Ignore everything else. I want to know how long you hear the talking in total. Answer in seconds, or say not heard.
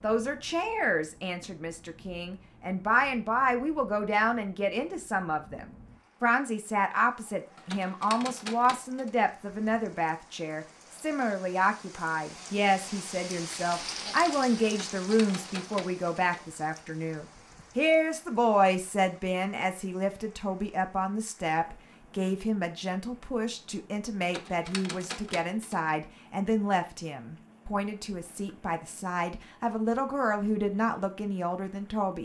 32 s.